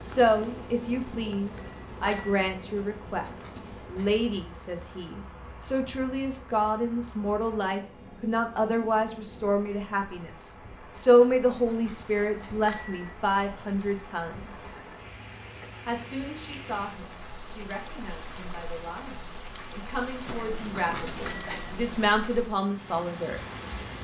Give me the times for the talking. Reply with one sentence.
You can hear the talking from 0.0 to 14.7 s and from 15.8 to 23.4 s.